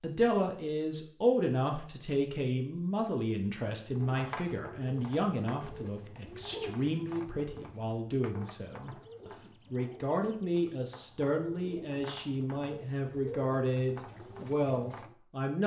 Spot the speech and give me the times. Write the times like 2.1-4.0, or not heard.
0.0-15.6.